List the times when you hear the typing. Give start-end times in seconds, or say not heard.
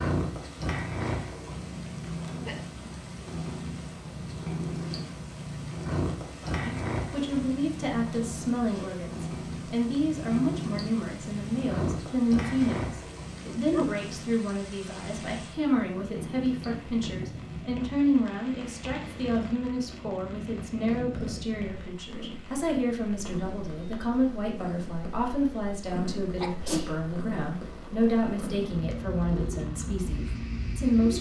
not heard.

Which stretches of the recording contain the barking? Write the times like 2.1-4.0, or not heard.
not heard.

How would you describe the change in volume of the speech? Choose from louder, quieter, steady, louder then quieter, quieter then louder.
steady.